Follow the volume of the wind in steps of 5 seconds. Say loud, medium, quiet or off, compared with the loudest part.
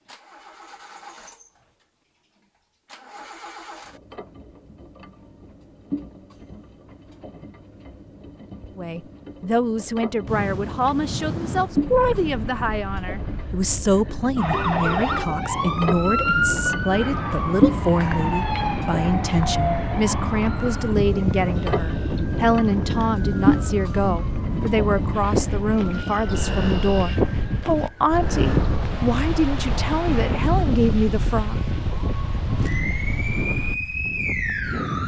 off, off, medium, medium, loud, loud, loud.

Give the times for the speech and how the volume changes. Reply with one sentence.
You can hear the speech from 8.8 to 31.6 s, at a steady volume.